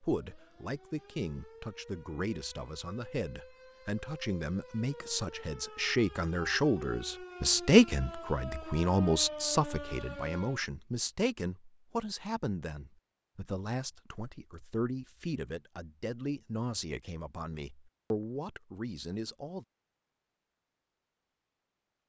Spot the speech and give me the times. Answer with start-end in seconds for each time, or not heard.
0.0-19.6.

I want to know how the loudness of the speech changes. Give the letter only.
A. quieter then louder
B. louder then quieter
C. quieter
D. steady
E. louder
B.